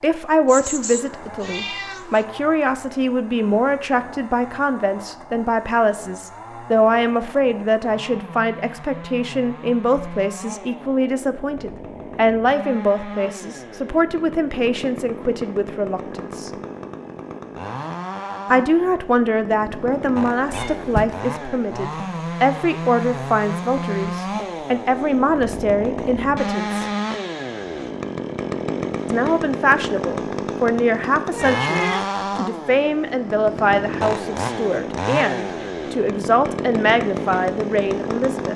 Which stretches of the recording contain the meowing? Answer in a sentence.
You can hear the meowing from 0.5 to 2.2 s, from 20.5 to 21.1 s and from 31.3 to 32.0 s.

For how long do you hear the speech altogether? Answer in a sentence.
The speech can be heard for 34 seconds in total.